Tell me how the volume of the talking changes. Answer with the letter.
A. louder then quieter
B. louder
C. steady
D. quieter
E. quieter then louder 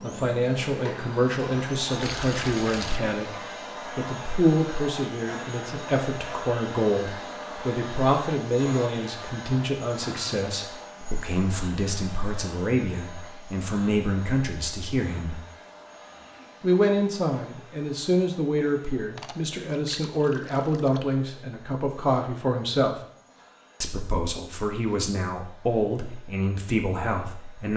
C.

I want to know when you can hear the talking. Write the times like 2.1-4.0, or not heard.
0.0-15.4, 16.6-23.0, 23.8-27.7.